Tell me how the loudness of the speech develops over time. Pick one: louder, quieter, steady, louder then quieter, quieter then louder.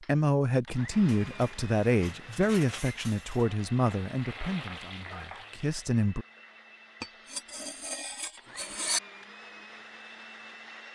quieter.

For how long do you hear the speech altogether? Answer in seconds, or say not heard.
6 s.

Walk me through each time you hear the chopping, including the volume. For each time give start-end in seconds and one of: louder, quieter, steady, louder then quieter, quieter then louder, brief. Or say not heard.
not heard.